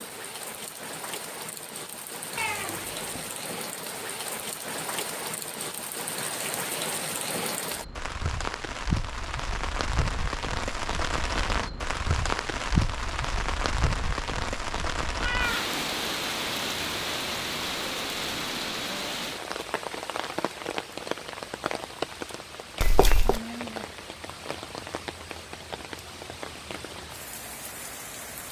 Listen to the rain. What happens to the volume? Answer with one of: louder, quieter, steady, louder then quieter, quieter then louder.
louder then quieter.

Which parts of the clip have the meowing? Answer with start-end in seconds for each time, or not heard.
2.4-3.4, 15.2-15.7, 22.8-23.4.